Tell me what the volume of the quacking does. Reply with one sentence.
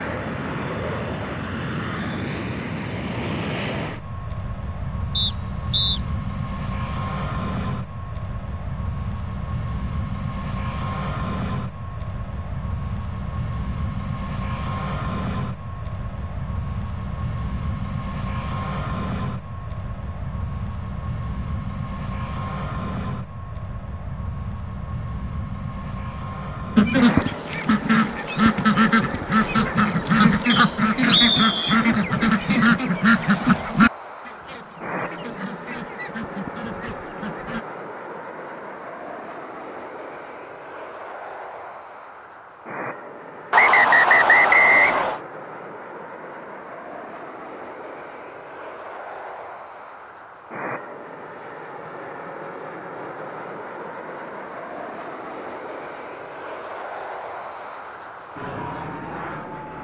The volume of the quacking goes down.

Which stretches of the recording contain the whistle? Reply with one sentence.
The whistle can be heard from 5.2 to 6.0 s, from 30.4 to 31.8 s and from 43.5 to 45.2 s.